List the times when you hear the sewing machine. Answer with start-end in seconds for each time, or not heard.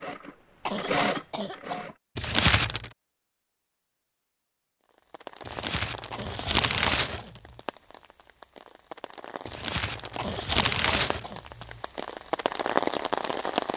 0.0-1.9.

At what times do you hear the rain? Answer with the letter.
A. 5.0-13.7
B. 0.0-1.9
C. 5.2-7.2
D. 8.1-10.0
A.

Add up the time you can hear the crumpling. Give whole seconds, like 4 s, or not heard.
5 s.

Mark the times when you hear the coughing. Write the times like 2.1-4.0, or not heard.
0.7-1.9, 6.1-7.3, 10.2-11.4.